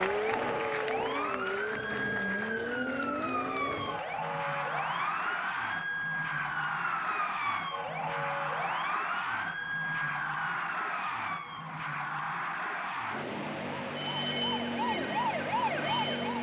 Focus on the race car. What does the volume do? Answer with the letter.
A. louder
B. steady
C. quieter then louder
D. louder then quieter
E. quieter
B.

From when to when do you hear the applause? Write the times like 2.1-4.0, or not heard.
0.0-5.2.